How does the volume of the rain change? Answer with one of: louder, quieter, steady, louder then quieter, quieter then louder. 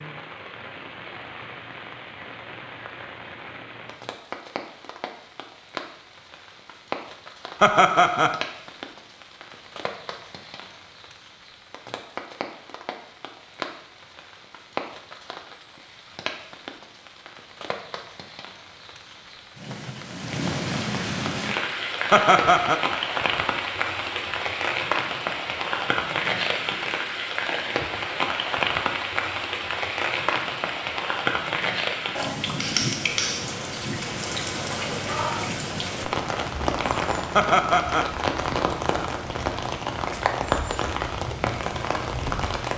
louder.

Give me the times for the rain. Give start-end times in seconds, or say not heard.
0.0-42.7.